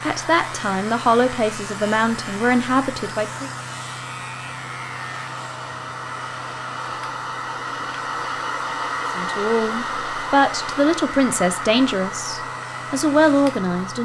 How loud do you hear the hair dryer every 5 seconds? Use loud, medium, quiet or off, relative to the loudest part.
medium, loud, loud.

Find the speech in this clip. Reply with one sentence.
You can hear the speech from 0.0 to 3.5 s and from 9.2 to 14.0 s.